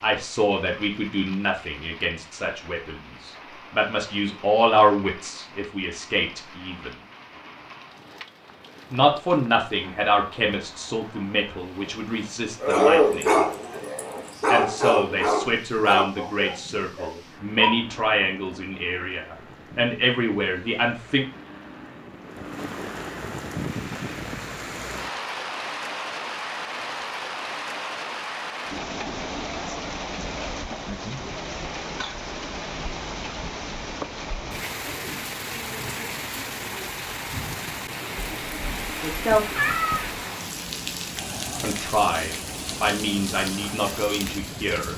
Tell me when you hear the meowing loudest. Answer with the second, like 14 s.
40 s.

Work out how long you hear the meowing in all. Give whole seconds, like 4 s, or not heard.
2 s.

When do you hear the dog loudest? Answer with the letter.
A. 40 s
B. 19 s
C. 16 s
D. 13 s
D.